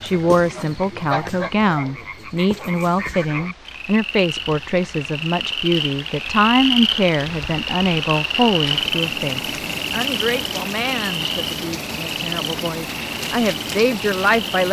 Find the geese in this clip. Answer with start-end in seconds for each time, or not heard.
0.0-1.9.